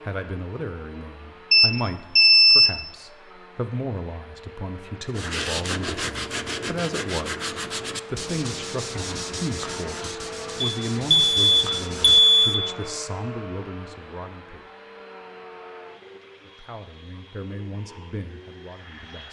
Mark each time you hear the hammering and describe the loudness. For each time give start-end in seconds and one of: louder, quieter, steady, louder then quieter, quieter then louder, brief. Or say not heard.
not heard.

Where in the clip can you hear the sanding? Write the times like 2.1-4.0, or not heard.
5.1-12.2.